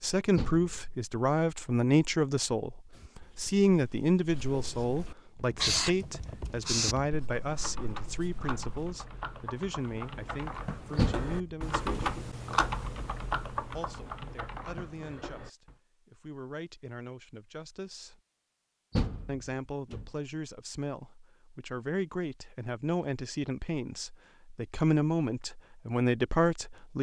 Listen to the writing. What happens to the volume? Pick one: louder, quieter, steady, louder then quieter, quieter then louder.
louder then quieter.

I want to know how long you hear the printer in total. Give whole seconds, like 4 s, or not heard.
not heard.